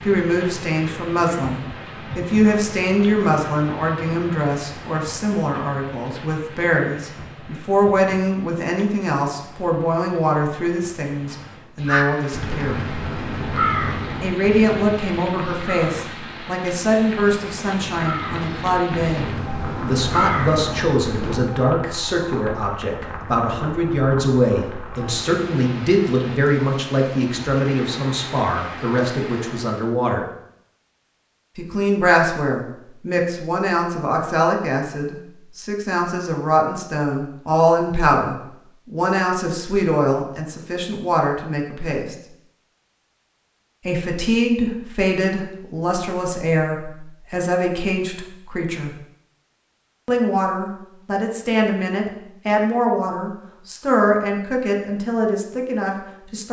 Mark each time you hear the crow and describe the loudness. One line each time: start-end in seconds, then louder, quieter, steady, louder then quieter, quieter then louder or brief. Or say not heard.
11.8-21.4 quieter then louder.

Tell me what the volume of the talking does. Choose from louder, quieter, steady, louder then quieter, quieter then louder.
steady.